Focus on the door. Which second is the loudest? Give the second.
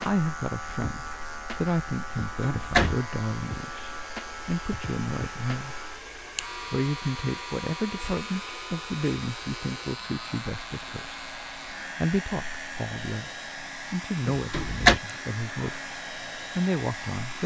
15 s.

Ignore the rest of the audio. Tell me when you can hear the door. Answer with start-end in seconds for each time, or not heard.
2.1-3.0, 14.3-15.0.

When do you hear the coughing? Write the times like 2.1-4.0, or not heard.
not heard.